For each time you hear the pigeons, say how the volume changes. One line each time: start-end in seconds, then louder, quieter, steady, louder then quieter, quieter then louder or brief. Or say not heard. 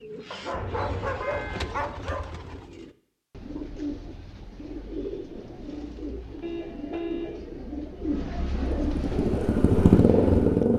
0.0-10.7 louder.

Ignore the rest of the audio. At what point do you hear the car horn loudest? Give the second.
7 s.